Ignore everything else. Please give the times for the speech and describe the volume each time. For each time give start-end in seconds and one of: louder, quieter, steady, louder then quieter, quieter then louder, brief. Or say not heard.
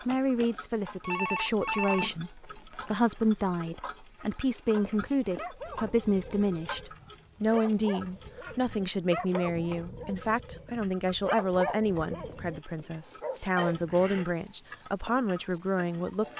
0.1-16.3 steady.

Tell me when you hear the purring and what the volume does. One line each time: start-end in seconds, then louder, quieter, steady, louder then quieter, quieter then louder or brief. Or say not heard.
not heard.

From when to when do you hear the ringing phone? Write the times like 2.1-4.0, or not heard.
1.0-2.1, 5.7-6.8, 13.6-14.2.